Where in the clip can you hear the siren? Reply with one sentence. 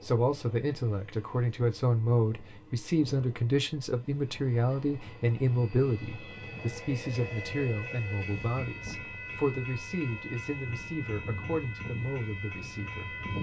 You can't hear the siren here.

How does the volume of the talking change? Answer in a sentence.
The volume of the talking goes down.